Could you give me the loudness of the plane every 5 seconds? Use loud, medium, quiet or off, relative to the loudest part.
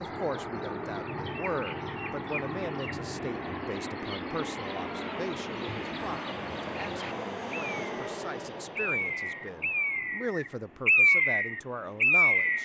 loud, loud, quiet.